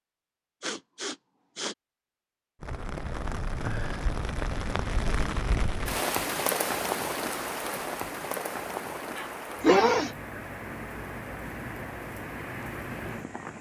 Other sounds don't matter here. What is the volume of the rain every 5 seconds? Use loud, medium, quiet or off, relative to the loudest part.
loud, loud, medium.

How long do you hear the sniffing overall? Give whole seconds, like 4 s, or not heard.
2 s.